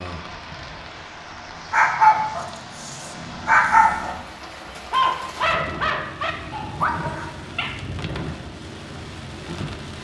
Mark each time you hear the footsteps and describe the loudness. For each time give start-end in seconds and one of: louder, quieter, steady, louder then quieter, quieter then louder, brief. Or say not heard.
not heard.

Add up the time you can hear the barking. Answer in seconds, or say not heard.
5 s.